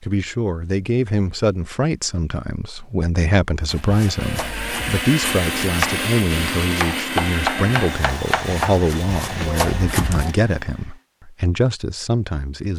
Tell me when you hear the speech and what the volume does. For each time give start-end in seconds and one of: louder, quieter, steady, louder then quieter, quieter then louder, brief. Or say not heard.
0.0-12.7 steady.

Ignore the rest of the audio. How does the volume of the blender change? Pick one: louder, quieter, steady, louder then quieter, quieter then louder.
quieter.